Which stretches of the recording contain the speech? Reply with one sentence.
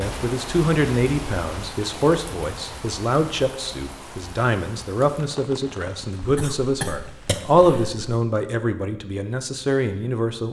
You can hear the speech from 0.0 to 10.4 s.